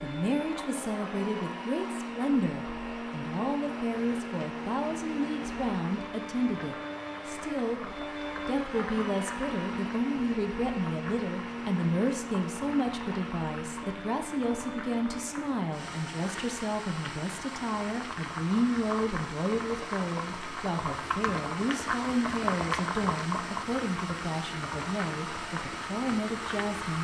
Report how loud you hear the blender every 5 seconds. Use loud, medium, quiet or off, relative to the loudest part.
loud, loud, loud, medium, loud, loud.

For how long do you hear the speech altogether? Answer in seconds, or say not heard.
27 s.